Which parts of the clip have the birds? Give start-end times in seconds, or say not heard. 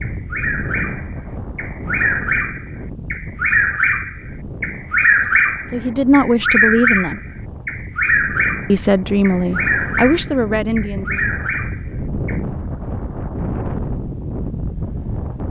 0.0-12.4.